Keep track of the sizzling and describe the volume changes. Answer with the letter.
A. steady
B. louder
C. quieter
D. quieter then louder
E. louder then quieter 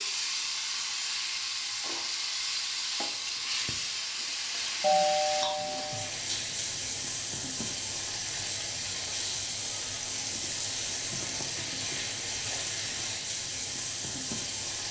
A.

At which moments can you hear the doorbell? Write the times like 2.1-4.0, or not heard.
4.8-6.0.